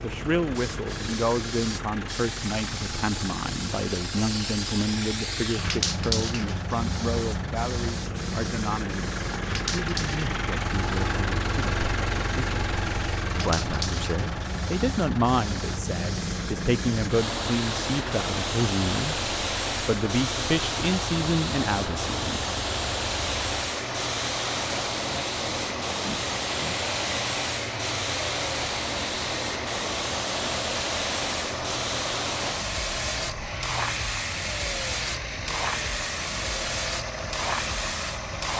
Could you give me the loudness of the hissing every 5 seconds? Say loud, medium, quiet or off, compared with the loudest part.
medium, loud, medium, loud, loud, loud, loud, loud.